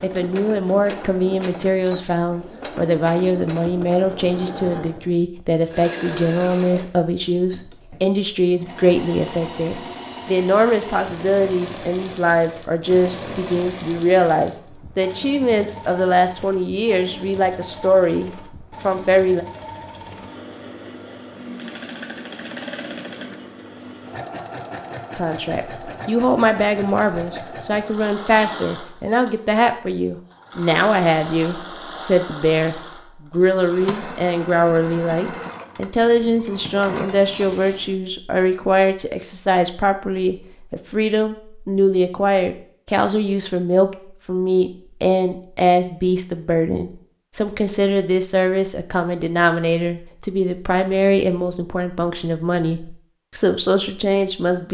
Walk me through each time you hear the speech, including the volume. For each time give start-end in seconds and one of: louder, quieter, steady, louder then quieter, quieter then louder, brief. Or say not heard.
0.0-19.4 steady
25.1-54.7 steady.